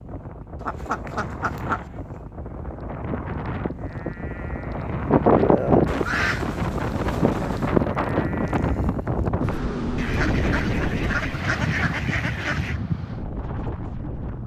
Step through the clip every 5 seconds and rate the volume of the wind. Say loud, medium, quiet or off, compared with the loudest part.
medium, loud, loud.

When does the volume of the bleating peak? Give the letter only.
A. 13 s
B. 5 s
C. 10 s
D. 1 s
B.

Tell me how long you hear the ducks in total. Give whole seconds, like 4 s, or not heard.
6 s.